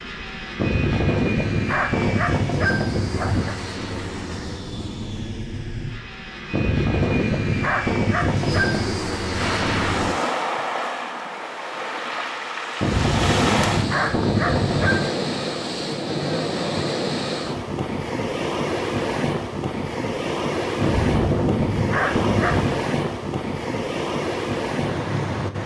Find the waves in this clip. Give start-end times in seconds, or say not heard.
9.3-25.6.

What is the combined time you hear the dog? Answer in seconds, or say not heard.
10 s.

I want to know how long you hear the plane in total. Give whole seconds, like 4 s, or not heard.
10 s.